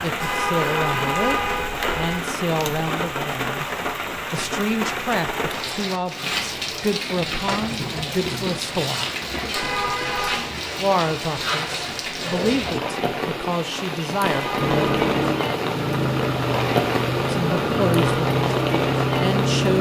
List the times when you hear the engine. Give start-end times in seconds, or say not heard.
14.6-19.7.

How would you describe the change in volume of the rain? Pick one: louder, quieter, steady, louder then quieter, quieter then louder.
steady.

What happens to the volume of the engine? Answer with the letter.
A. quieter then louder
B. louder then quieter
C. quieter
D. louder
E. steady
E.